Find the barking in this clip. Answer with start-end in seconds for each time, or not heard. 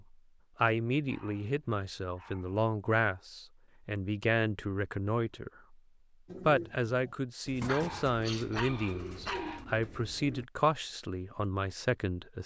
1.1-2.6, 7.7-9.7.